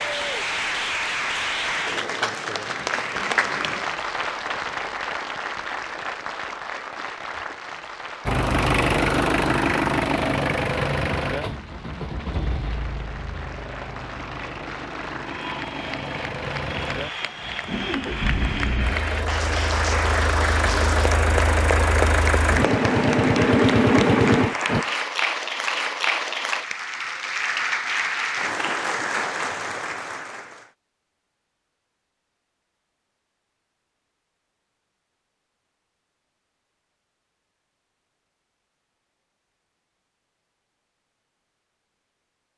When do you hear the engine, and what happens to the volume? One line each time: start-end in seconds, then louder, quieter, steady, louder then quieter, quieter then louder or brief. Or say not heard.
8.2-24.9 quieter then louder.